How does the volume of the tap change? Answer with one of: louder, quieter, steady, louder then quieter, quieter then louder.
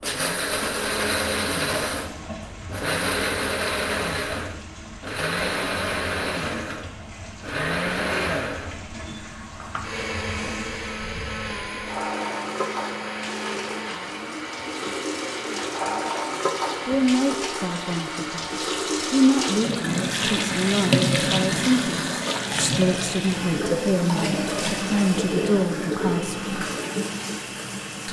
louder.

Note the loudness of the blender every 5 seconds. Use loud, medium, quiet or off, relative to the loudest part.
loud, loud, medium, medium, medium, quiet.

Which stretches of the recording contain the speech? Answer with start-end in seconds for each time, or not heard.
16.9-26.4.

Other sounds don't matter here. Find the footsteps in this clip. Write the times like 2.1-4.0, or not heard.
not heard.